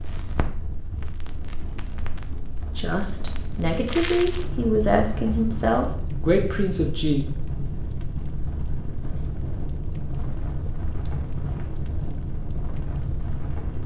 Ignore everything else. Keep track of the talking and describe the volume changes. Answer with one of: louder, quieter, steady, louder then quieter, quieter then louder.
louder.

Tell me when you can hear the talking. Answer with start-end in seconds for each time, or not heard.
2.8-7.2.